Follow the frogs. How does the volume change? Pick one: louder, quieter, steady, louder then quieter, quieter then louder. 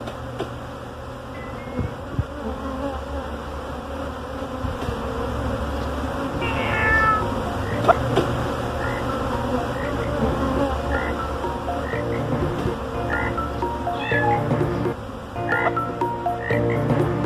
louder.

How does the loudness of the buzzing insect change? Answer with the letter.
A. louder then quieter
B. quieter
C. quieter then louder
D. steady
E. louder
A.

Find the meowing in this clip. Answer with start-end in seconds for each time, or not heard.
1.3-2.2, 6.4-7.2, 13.9-14.6.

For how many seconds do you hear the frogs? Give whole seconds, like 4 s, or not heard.
11 s.